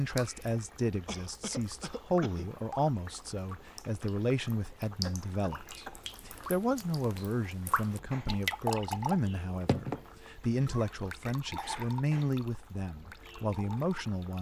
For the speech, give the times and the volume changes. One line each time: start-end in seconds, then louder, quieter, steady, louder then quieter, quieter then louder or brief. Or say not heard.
0.0-14.3 steady.